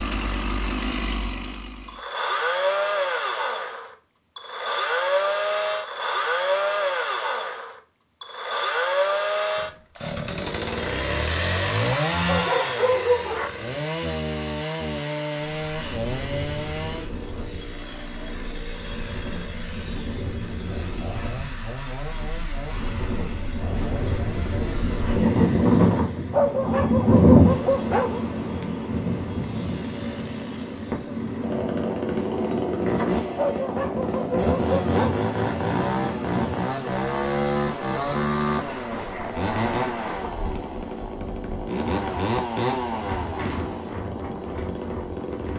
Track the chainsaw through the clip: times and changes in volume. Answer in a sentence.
The chainsaw can be heard from 0.0 to 45.5 s, getting quieter then louder.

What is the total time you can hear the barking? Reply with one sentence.
You can hear the barking for 5 seconds altogether.